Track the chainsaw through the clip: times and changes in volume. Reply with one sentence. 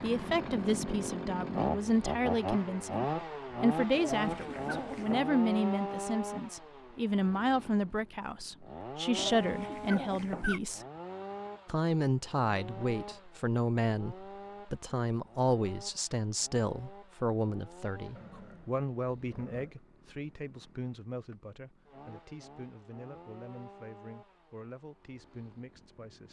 You can hear the chainsaw from 0.0 to 26.2 s, getting quieter.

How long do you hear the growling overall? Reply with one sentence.
The growling can be heard for 4 seconds in total.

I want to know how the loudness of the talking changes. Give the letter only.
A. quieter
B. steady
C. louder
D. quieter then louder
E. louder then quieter
A.